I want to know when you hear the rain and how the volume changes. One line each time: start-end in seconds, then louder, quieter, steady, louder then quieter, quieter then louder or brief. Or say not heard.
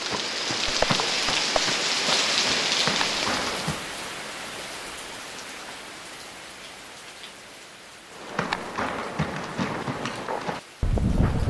0.0-11.4 quieter.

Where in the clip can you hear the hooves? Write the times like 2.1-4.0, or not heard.
0.0-3.9, 8.2-11.4.